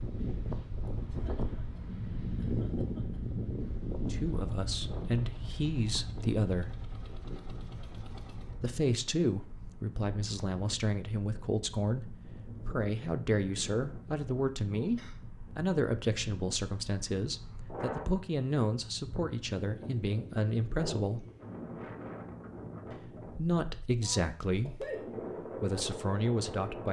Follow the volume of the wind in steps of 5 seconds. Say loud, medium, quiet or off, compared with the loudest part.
loud, medium, medium, medium, medium, loud.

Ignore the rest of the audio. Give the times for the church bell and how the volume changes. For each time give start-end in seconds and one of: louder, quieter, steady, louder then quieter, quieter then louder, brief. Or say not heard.
not heard.